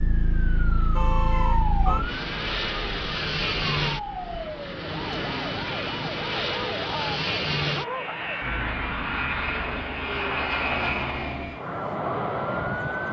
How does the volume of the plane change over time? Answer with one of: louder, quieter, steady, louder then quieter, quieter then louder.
louder.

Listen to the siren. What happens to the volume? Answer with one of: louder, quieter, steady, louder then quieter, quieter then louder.
quieter.